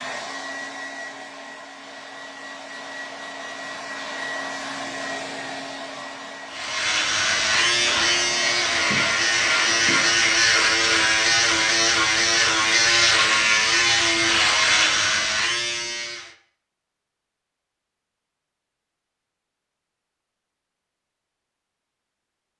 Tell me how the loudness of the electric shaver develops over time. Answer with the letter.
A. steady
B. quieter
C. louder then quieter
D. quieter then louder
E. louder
A.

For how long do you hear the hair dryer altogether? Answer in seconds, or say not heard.
10 s.